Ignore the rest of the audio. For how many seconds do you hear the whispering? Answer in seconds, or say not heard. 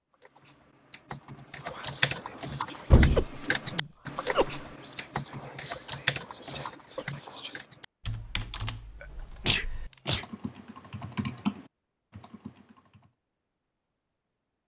6 s.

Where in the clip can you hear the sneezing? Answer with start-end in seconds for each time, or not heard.
3.1-4.7, 9.0-10.2.